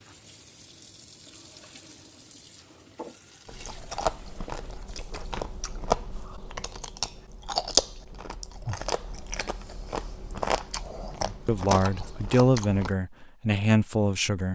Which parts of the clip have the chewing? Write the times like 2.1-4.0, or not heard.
3.5-12.9.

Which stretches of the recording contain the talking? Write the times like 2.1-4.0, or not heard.
11.2-14.5.